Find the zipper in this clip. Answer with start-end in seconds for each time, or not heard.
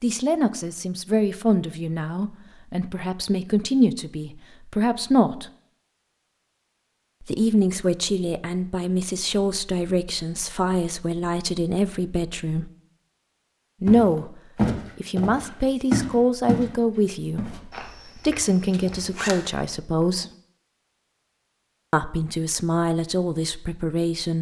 18.7-19.4.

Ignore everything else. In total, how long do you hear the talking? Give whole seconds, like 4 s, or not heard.
19 s.